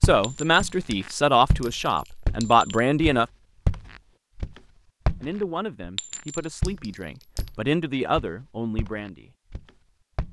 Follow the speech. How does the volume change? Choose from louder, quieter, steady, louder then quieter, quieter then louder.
quieter.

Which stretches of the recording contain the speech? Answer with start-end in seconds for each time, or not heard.
0.0-3.2, 5.2-9.3.